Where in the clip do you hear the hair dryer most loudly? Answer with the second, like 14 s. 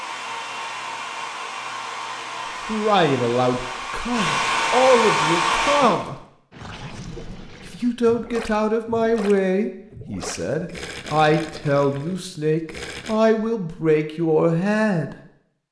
5 s.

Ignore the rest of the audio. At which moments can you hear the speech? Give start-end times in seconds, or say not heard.
2.6-6.2, 7.7-15.2.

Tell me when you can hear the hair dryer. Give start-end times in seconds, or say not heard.
0.0-6.0.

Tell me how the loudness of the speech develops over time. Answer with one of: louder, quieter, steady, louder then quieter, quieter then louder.
steady.